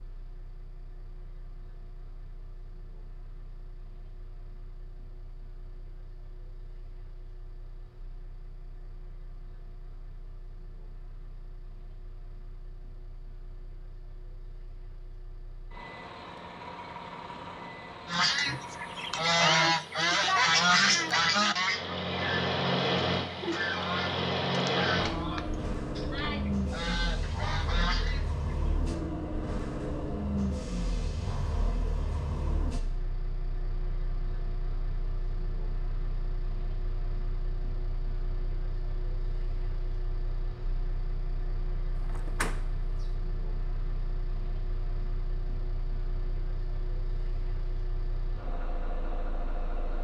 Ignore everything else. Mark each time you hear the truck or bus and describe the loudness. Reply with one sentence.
You can hear the truck or bus from 0.0 to 49.9 s, getting louder then quieter.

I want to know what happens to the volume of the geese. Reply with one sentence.
The volume of the geese goes down.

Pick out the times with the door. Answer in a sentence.
You can hear the door from 42.0 to 43.0 s.